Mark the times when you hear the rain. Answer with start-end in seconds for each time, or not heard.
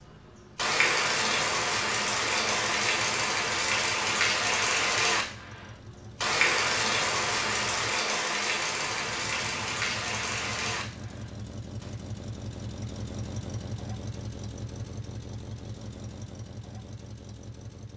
0.0-11.9.